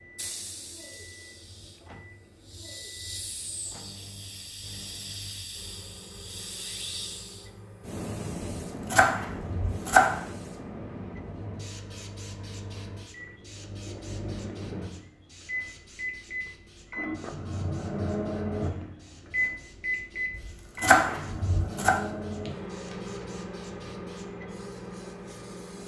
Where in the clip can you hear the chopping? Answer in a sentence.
The chopping can be heard from 8.9 to 10.2 s and from 20.4 to 21.9 s.